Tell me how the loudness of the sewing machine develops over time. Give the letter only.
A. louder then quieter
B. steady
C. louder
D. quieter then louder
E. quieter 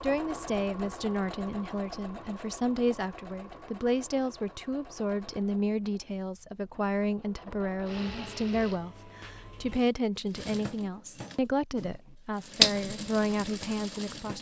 D.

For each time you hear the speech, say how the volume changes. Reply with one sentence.
The speech can be heard from 0.0 to 14.3 s, at a steady volume.